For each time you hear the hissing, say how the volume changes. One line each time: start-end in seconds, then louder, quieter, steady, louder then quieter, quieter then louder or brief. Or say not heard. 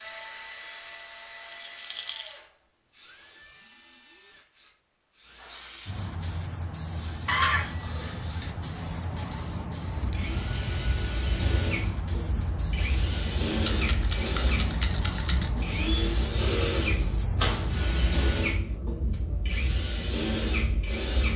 5.2-18.1 steady.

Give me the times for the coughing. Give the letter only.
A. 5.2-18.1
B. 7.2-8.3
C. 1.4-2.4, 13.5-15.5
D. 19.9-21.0
B.